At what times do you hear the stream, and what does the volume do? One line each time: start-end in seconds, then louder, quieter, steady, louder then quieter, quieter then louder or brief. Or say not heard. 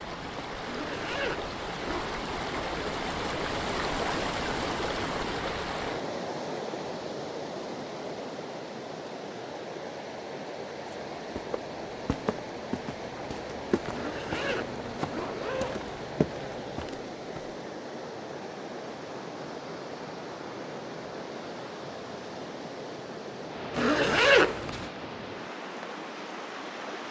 0.0-27.0 quieter.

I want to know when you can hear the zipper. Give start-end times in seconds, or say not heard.
0.7-2.1, 13.9-15.9, 23.8-24.9.